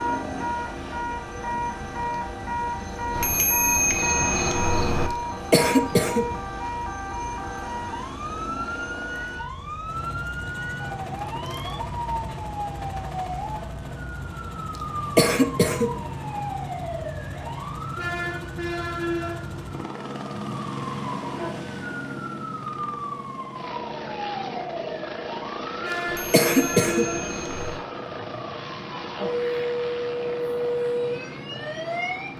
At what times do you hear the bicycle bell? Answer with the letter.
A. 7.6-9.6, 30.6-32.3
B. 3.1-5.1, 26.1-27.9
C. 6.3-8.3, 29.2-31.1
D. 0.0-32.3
B.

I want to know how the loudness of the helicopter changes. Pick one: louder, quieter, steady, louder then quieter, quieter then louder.
steady.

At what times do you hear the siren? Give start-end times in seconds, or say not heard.
0.0-32.3.